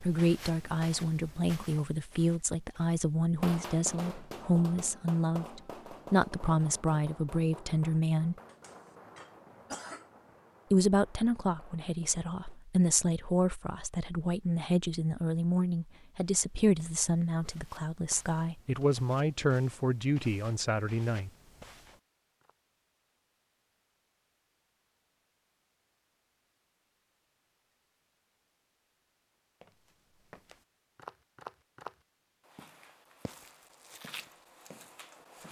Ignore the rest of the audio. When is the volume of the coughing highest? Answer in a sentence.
The volume of the coughing peaks at 10 seconds.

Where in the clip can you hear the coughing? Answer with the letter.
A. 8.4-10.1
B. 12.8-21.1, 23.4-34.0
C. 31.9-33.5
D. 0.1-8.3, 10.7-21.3
A.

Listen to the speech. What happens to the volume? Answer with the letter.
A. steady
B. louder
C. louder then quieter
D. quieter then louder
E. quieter
A.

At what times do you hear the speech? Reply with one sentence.
The speech can be heard from 0.1 to 8.3 s and from 10.7 to 21.3 s.